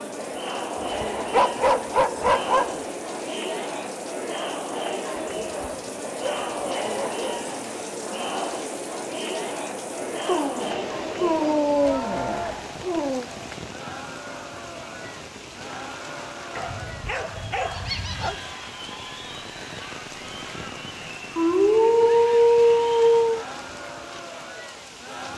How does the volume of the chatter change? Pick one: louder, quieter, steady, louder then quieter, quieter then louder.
quieter.